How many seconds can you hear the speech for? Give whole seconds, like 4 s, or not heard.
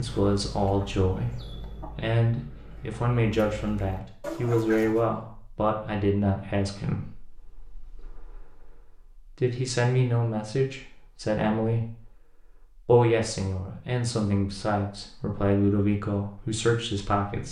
17 s.